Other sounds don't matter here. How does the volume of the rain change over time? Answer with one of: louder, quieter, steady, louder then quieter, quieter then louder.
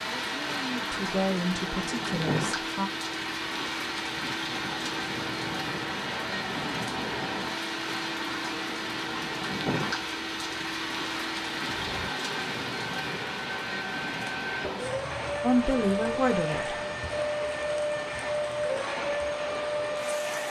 quieter.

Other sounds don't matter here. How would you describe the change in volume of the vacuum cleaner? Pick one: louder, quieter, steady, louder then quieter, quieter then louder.
louder.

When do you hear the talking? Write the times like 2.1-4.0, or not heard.
0.2-2.9, 15.4-16.8.